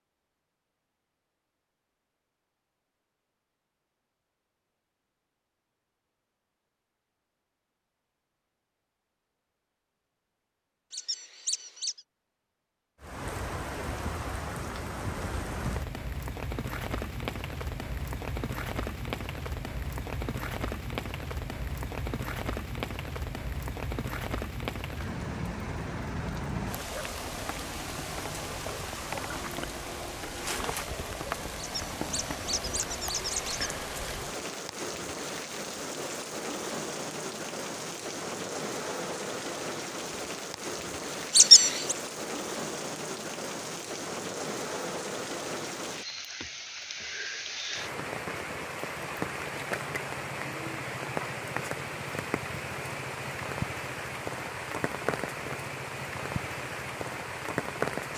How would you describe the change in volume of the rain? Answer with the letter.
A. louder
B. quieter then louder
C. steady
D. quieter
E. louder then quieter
C.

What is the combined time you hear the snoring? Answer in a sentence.
You can't hear the snoring here.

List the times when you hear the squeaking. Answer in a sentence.
You can hear the squeaking from 10.9 to 12.0 s, from 31.6 to 33.7 s and from 41.3 to 42.0 s.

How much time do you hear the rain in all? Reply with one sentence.
The rain can be heard for 45 seconds in total.